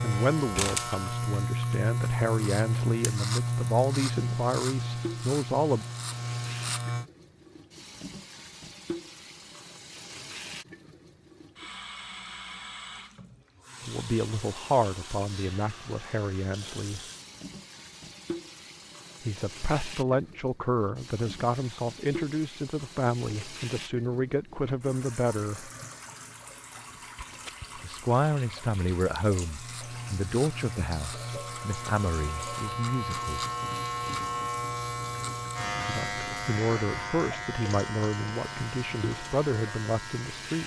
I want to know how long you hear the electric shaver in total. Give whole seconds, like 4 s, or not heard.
18 s.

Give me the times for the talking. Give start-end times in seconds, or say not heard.
0.0-5.8, 13.8-17.0, 19.2-25.7, 27.8-33.5, 35.9-40.6.